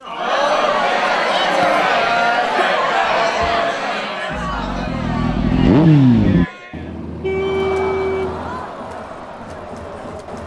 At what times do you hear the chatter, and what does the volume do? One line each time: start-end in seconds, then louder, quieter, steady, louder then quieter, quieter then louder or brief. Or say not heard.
0.0-10.4 quieter.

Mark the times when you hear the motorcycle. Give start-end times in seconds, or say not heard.
4.3-6.5.